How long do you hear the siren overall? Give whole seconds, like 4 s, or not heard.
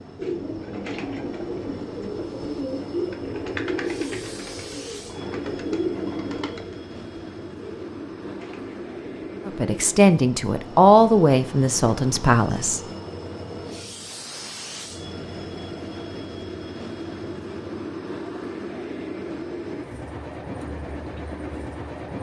not heard.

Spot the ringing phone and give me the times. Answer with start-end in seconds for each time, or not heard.
not heard.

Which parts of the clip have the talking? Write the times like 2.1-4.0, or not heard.
9.4-12.8.